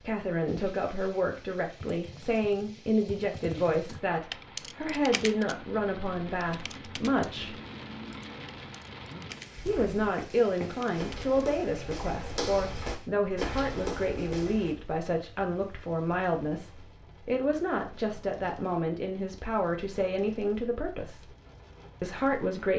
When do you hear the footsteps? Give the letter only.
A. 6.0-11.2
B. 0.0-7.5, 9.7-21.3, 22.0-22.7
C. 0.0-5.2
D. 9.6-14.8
D.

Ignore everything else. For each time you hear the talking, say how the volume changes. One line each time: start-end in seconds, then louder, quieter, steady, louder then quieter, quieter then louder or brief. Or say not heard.
0.0-7.5 steady
9.7-21.3 steady
22.0-22.7 brief.